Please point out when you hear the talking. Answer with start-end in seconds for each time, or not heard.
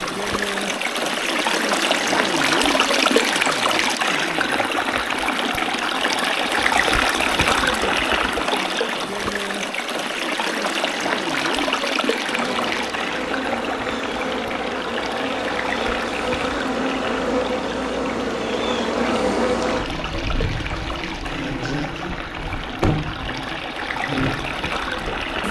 not heard.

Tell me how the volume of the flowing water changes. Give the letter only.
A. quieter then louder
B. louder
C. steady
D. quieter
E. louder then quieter
D.